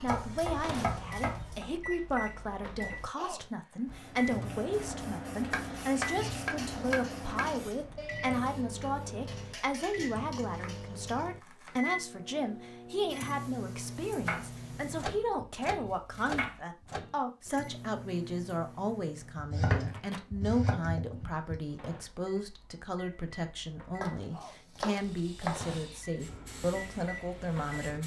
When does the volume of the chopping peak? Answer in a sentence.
The loudest moment of the chopping is at 20 seconds.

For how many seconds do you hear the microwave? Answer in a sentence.
The microwave can be heard for 28 seconds in total.